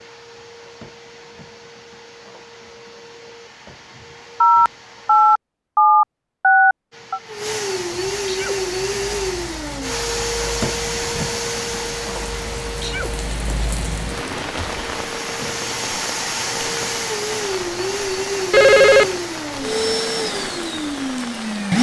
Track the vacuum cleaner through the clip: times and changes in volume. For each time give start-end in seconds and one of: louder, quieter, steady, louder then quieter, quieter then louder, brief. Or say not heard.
0.0-5.4 steady
6.9-21.7 quieter then louder.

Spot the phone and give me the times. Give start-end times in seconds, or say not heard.
4.4-7.2, 18.5-19.1.